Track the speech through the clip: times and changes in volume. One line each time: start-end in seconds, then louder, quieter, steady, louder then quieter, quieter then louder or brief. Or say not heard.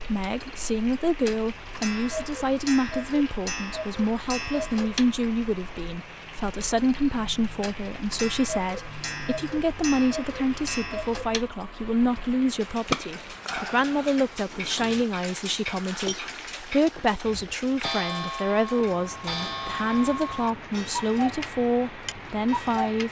0.0-23.0 steady.